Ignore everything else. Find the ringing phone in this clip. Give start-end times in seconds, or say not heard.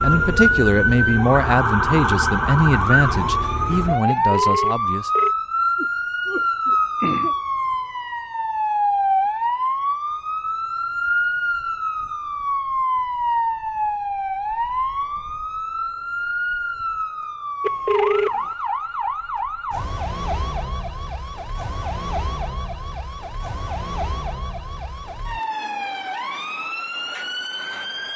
4.3-5.3, 17.6-18.3.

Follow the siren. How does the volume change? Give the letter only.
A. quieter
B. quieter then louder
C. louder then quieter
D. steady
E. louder
A.